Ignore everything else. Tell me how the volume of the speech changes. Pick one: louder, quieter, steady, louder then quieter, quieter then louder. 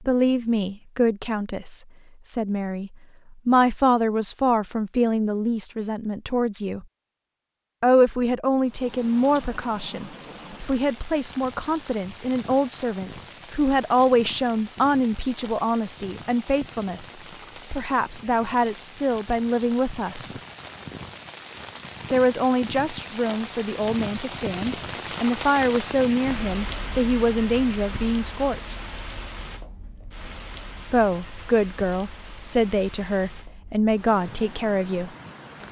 steady.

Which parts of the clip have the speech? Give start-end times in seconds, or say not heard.
0.0-6.8, 7.8-20.4, 22.1-28.8, 30.9-35.1.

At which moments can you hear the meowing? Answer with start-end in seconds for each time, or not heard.
not heard.